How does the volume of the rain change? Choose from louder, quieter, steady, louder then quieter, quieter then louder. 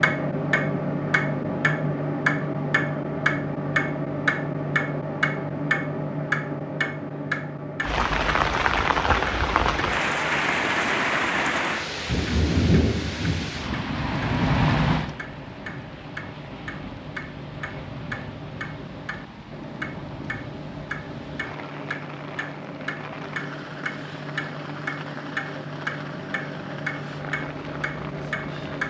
quieter.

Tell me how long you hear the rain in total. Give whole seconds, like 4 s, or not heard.
21 s.